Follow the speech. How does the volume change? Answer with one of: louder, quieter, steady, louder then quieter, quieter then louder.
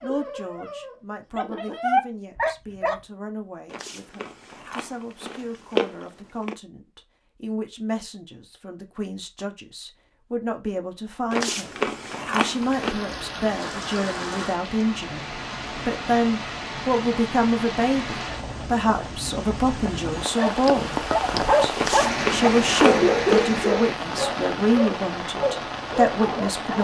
louder.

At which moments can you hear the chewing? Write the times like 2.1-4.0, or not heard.
3.7-6.5, 11.3-12.9, 21.8-23.6.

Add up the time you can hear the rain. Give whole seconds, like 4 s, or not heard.
14 s.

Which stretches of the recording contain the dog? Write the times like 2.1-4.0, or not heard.
0.0-3.0, 20.4-26.7.